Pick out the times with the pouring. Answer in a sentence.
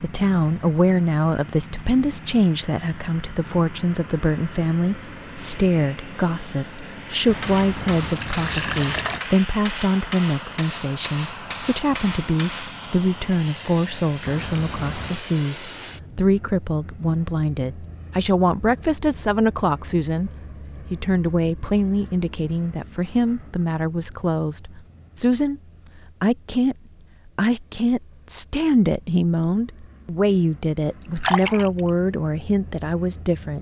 The pouring can be heard from 7.2 to 9.2 s, from 14.2 to 15.2 s and from 31.0 to 31.9 s.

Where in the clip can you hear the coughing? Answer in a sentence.
The coughing can't be heard in this clip.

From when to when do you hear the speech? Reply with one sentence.
You can hear the speech from 0.0 to 20.3 s, from 20.9 to 25.6 s, from 26.2 to 26.8 s and from 27.4 to 33.5 s.